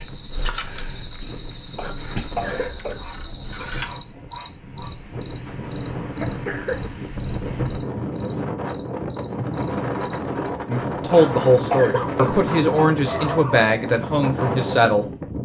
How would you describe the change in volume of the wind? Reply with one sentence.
The loudness of the wind goes up.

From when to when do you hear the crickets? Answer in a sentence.
The crickets can be heard from 0.0 to 10.5 s.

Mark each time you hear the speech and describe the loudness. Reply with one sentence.
The speech can be heard from 10.7 to 15.1 s, getting quieter.